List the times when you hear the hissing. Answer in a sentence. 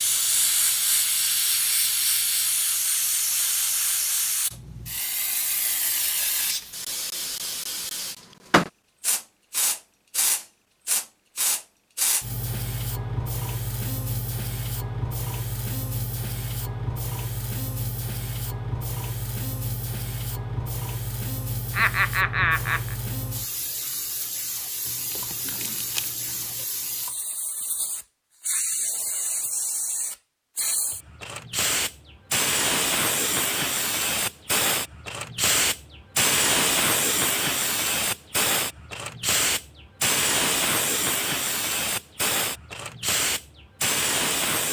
You can hear the hissing from 0.0 to 44.6 s.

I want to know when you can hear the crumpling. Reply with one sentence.
The crumpling can be heard from 24.9 to 26.6 s.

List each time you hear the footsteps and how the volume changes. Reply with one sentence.
You can't hear the footsteps here.